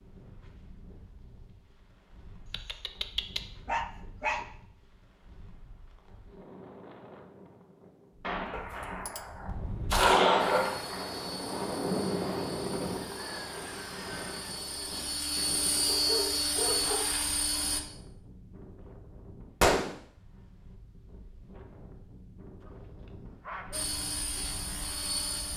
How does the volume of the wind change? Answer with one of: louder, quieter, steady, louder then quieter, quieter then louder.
louder then quieter.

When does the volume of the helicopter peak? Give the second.
16 s.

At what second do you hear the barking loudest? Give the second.
10 s.